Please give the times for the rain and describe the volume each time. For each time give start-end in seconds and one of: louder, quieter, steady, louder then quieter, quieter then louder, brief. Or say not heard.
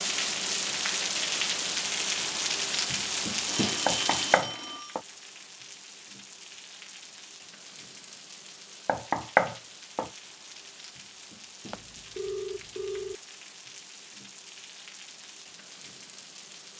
0.0-16.7 quieter.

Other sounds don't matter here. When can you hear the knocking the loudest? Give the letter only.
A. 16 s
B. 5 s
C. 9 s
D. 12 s
C.